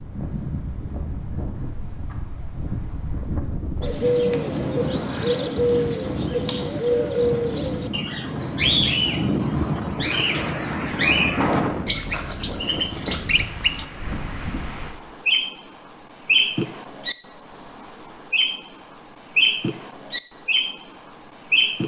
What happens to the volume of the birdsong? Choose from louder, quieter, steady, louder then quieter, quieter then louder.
steady.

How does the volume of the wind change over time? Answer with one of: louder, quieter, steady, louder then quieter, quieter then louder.
louder then quieter.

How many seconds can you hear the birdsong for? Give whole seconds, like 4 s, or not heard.
18 s.